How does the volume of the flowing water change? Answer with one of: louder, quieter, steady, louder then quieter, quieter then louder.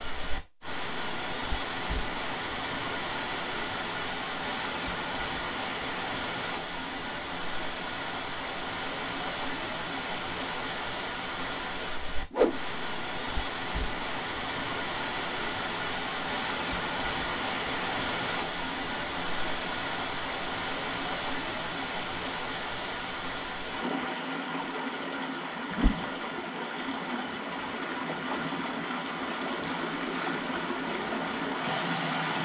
steady.